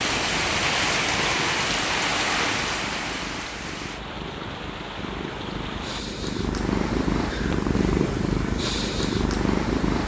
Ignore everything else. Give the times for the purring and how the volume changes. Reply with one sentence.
You can hear the purring from 0.1 to 10.0 s, getting louder.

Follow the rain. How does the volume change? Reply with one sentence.
The volume of the rain goes down.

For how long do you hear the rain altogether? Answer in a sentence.
The rain can be heard for 6 seconds in total.